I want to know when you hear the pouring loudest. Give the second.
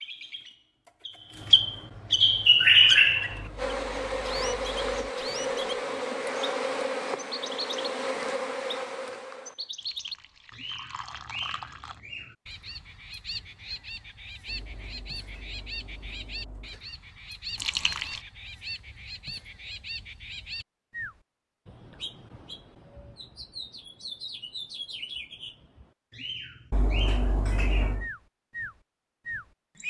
18 s.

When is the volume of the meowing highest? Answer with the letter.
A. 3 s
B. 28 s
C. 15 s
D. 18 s
B.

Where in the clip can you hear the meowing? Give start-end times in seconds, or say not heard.
3.3-5.1, 14.4-16.9, 26.7-28.1.